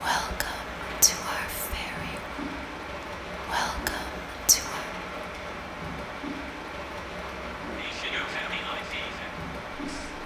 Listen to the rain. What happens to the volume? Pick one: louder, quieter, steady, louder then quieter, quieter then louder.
steady.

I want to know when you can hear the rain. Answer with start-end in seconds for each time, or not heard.
0.0-10.2.